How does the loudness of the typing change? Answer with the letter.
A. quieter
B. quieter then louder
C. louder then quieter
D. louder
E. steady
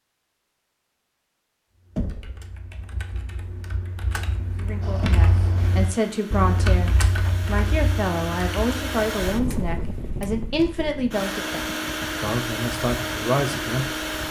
C.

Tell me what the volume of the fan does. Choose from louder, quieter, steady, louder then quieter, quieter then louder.
louder.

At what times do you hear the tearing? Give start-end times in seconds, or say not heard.
not heard.